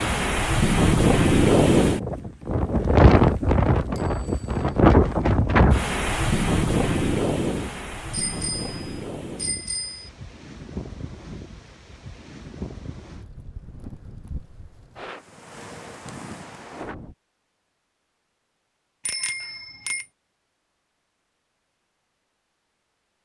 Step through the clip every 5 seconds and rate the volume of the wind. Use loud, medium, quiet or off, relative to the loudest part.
loud, medium, quiet, quiet, off.